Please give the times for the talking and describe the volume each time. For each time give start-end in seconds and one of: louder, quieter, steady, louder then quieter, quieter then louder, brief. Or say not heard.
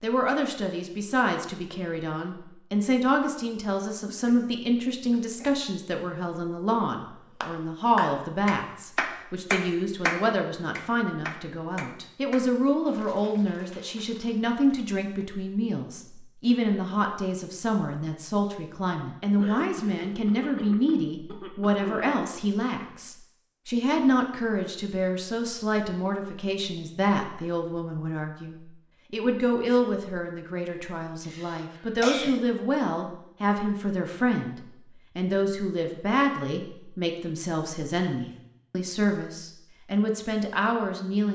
0.0-41.2 steady.